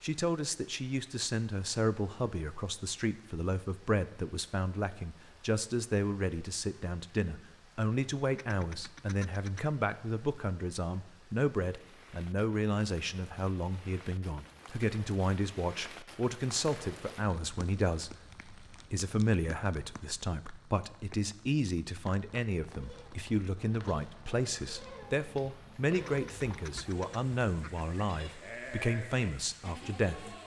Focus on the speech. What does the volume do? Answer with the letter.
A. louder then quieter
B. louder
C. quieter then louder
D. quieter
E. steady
E.